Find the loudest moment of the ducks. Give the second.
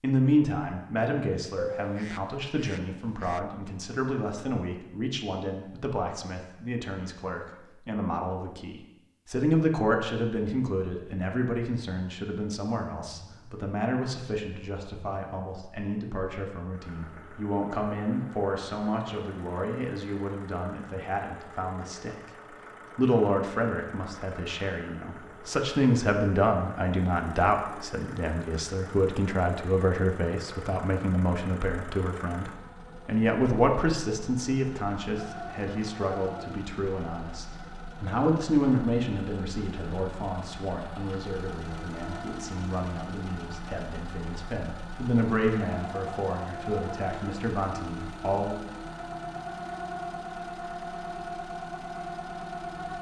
2 s.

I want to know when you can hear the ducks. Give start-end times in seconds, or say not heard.
1.6-3.4.